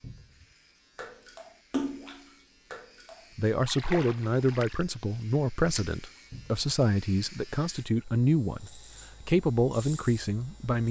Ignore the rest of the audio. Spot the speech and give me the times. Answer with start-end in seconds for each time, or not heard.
3.4-10.8.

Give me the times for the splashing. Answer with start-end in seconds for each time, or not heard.
0.9-6.2.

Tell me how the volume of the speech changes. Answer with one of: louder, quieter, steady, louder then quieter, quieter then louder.
steady.